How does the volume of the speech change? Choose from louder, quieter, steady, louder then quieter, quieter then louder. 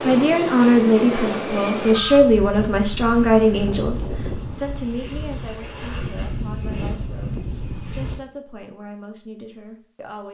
quieter.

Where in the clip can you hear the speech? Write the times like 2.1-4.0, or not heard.
0.0-10.3.